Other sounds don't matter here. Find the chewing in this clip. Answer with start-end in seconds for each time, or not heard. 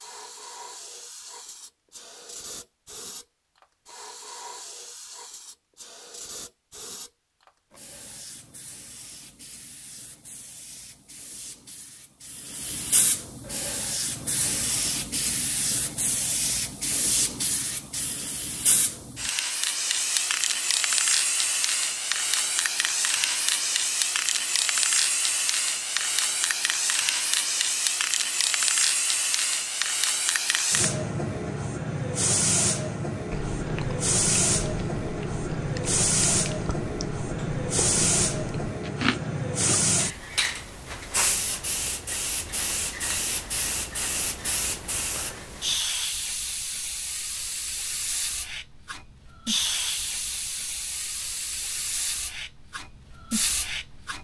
33.3-39.8.